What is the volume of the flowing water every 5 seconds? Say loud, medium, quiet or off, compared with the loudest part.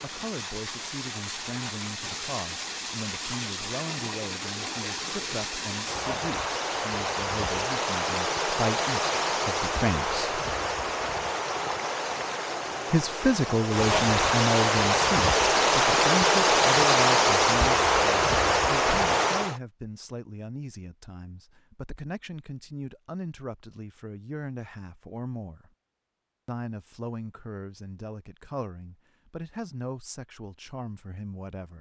quiet, medium, medium, loud, off, off, off.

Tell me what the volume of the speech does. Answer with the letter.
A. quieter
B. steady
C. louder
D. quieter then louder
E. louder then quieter
E.